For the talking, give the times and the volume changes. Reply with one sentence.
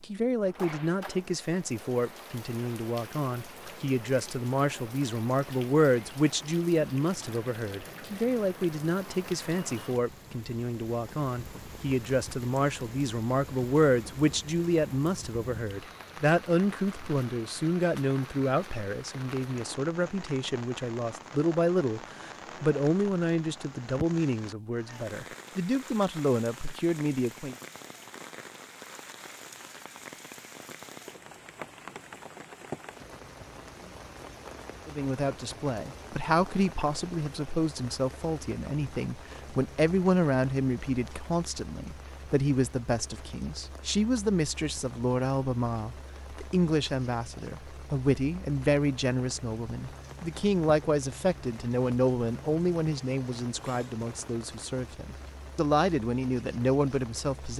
The talking can be heard from 0.0 to 27.6 s, at a steady volume; and from 34.9 to 57.5 s, at a steady volume.